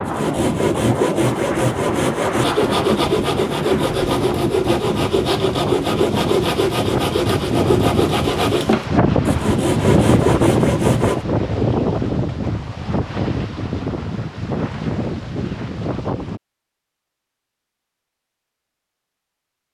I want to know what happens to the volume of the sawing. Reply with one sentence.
The volume of the sawing stays about the same.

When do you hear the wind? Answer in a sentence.
The wind can be heard from 0.0 to 16.4 s.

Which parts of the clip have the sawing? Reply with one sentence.
The sawing can be heard from 0.1 to 11.2 s.